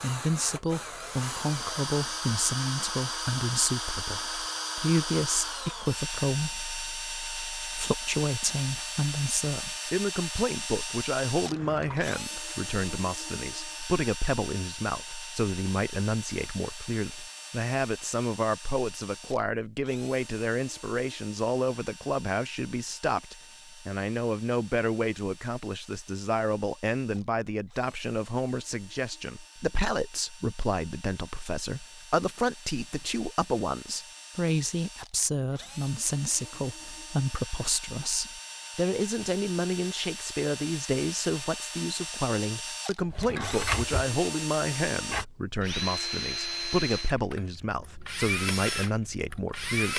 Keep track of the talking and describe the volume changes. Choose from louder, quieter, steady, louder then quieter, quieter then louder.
steady.